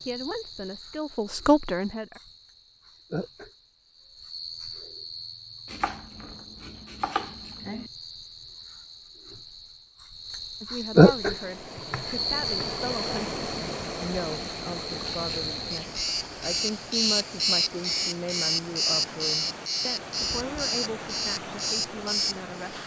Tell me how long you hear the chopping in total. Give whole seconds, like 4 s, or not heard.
3 s.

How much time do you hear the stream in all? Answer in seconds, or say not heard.
12 s.